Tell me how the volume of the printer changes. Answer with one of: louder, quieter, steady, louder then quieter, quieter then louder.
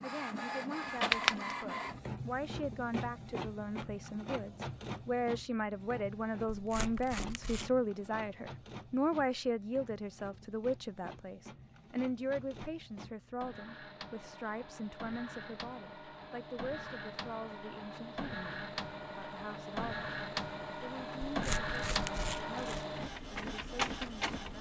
quieter then louder.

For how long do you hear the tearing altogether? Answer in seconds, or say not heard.
3 s.